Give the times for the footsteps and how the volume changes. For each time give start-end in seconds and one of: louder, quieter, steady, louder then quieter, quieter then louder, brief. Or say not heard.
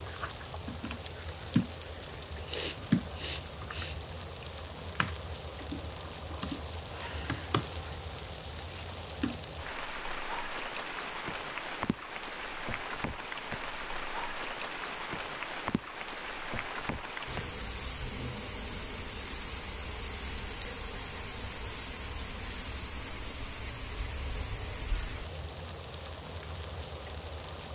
not heard.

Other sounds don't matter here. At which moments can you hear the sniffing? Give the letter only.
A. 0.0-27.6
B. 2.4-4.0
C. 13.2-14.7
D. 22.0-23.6
B.